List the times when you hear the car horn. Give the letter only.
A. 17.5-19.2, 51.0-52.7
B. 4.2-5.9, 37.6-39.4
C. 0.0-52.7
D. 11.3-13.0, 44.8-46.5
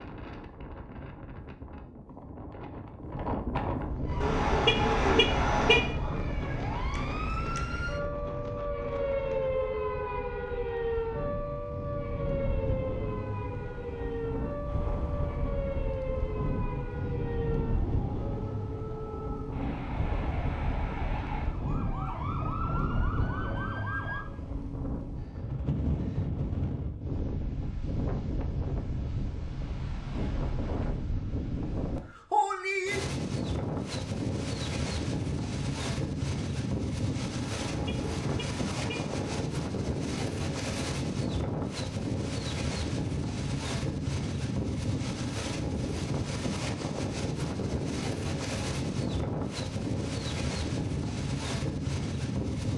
B.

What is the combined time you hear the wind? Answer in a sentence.
The wind can be heard for 53 seconds in total.